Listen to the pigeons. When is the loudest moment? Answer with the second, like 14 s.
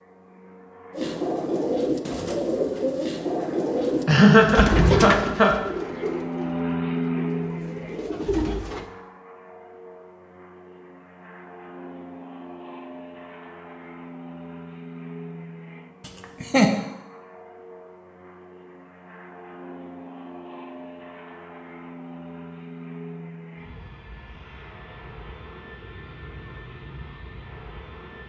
5 s.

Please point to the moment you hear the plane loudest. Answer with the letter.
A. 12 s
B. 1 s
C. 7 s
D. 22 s
C.